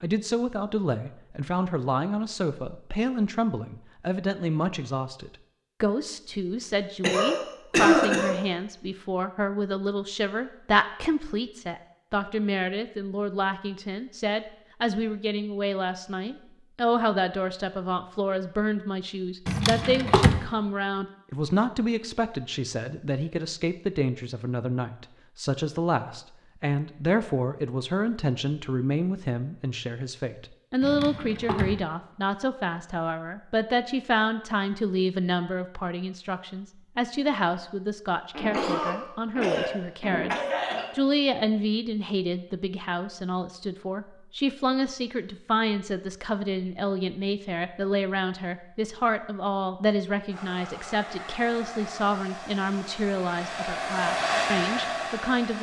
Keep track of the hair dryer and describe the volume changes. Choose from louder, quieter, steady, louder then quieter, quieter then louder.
louder.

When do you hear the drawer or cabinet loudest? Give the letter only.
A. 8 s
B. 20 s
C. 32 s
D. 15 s
B.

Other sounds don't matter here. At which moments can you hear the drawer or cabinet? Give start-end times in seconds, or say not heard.
19.4-20.4, 30.8-31.8.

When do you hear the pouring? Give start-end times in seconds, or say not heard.
not heard.